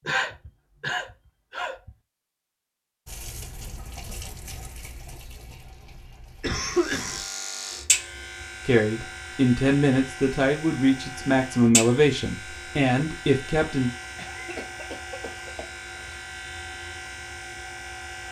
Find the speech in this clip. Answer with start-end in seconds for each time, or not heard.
8.7-13.9.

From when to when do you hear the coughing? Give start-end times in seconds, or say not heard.
0.1-1.9, 6.4-7.2, 14.2-16.1.